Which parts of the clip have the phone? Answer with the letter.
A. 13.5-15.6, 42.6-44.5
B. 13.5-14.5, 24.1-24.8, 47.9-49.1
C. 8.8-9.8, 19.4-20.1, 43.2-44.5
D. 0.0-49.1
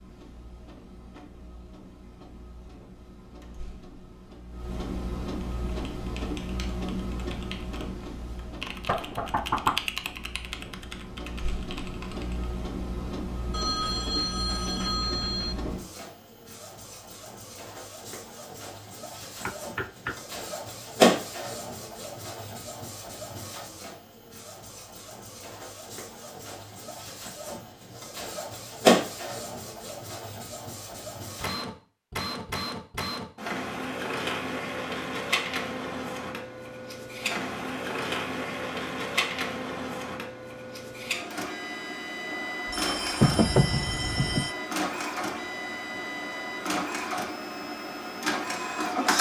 A.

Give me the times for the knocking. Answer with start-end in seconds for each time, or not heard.
8.8-9.8, 19.4-20.1, 43.2-44.5.